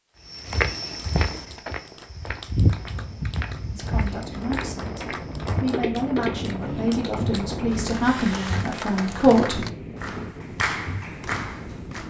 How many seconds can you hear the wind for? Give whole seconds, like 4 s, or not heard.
9 s.